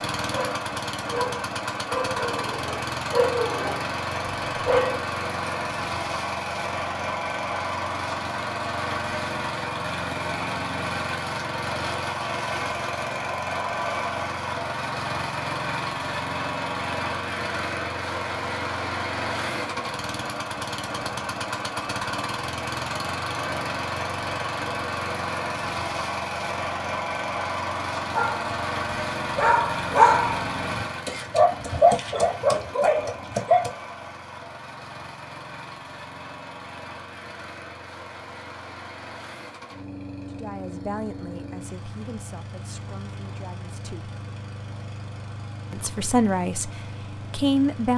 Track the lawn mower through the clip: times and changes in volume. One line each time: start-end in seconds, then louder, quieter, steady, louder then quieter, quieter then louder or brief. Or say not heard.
0.0-47.9 quieter.